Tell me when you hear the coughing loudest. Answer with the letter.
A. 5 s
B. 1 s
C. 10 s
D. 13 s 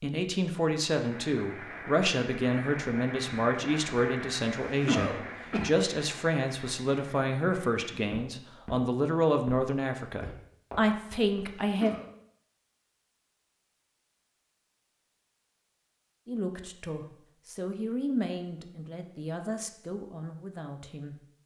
A.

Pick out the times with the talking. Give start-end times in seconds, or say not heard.
0.0-11.9, 16.2-21.1.